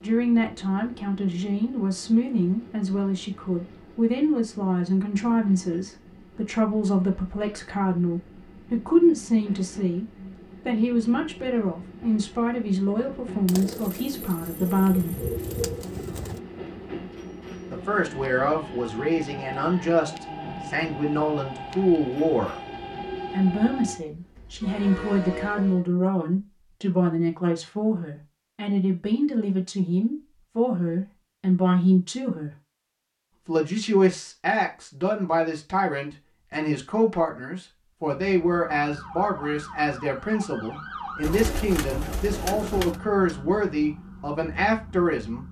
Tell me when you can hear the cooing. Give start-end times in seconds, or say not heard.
13.4-16.4, 41.2-43.0.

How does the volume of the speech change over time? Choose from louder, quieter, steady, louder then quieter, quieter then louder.
steady.